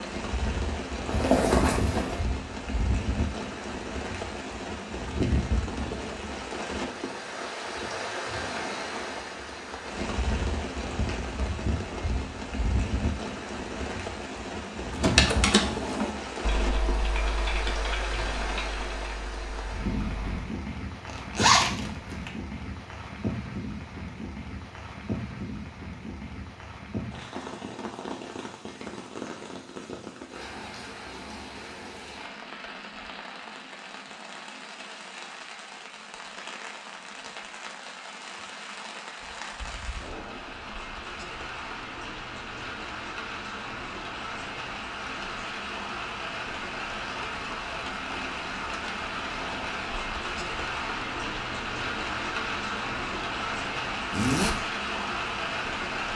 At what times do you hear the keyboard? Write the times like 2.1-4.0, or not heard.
14.9-20.4.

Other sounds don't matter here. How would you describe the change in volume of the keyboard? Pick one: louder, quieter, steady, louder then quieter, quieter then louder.
quieter.